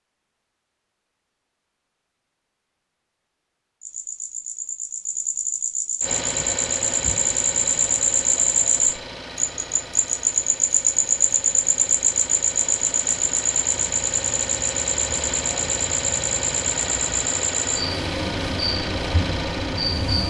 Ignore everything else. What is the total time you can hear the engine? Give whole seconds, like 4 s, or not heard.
14 s.